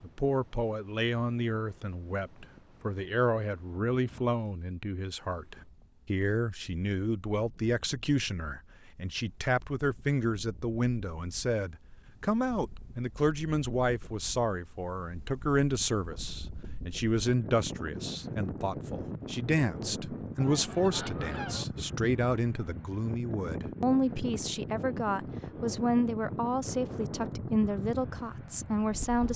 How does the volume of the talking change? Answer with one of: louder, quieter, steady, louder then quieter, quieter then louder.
steady.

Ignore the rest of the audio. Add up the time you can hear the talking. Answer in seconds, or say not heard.
29 s.